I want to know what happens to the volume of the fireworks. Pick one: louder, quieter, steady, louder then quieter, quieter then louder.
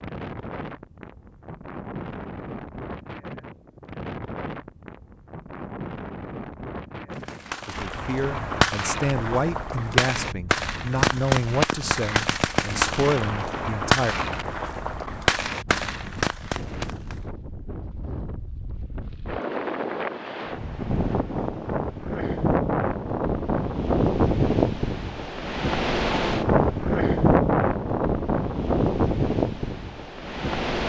steady.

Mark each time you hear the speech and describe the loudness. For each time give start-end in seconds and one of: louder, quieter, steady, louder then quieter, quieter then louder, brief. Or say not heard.
7.7-14.2 steady.